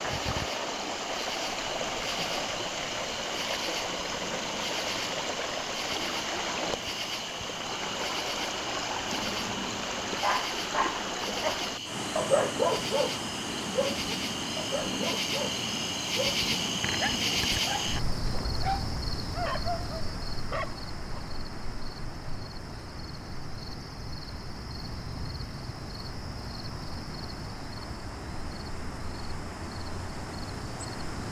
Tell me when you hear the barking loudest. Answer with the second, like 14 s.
12 s.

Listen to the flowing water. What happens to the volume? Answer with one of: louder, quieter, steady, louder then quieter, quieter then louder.
quieter.